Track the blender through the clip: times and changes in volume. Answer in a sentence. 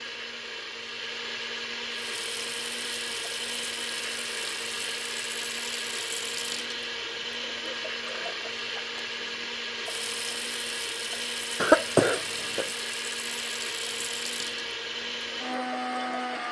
You can hear the blender from 0.0 to 16.4 s, at a steady volume.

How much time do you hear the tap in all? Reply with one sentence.
The tap can be heard for 14 seconds in total.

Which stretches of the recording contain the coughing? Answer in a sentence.
The coughing can be heard from 11.6 to 12.7 s.